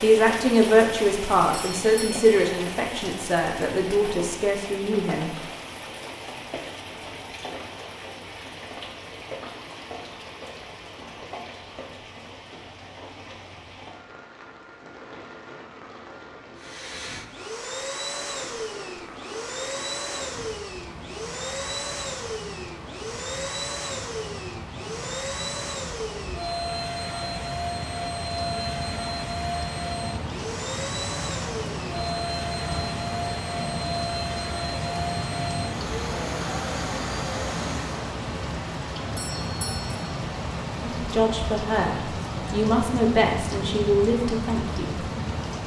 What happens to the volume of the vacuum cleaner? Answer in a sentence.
The volume of the vacuum cleaner stays about the same.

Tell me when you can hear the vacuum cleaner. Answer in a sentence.
The vacuum cleaner can be heard from 16.6 to 38.1 s.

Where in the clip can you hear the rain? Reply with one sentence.
The rain can be heard from 0.0 to 45.6 s.